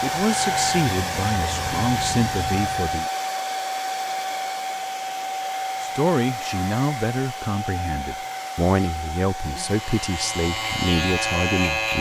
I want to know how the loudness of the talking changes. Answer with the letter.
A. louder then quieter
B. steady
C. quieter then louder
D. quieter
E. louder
B.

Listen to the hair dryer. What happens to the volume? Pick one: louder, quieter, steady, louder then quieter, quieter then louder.
quieter.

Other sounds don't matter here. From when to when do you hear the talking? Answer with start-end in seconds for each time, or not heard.
0.0-3.0, 5.8-11.9.